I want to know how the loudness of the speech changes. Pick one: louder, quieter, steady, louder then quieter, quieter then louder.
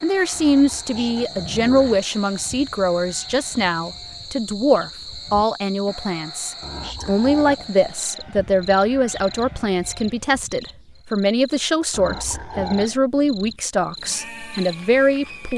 steady.